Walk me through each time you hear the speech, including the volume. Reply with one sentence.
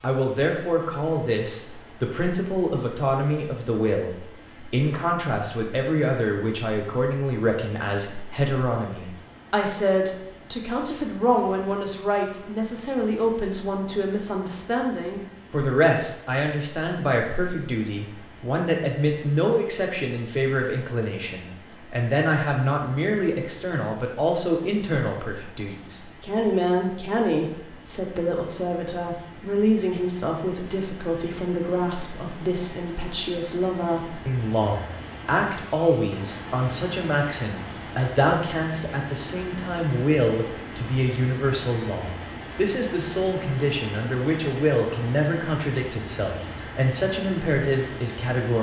You can hear the speech from 0.0 to 48.5 s, at a steady volume.